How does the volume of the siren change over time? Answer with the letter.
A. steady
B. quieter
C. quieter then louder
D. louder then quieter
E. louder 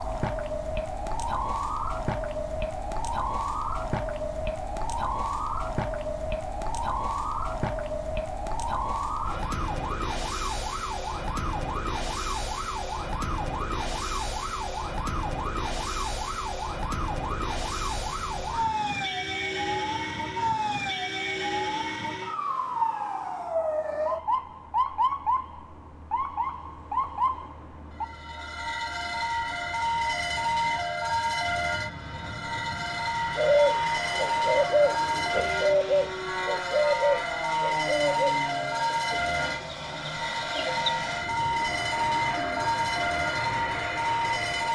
A.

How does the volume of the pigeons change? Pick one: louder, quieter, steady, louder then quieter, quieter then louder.
quieter.